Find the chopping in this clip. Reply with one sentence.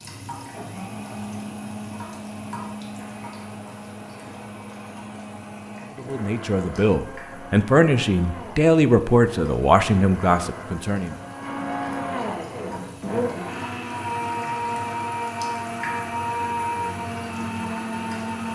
You can't hear the chopping here.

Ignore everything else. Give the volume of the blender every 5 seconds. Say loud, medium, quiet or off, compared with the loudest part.
medium, medium, loud, loud.